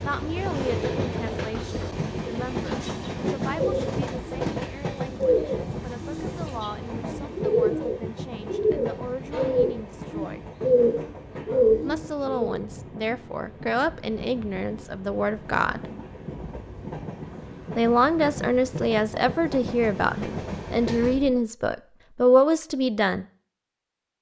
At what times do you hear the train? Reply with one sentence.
You can hear the train from 0.0 to 21.4 s.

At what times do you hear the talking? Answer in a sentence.
The talking can be heard from 0.0 to 10.4 s, from 11.8 to 15.8 s and from 17.8 to 23.2 s.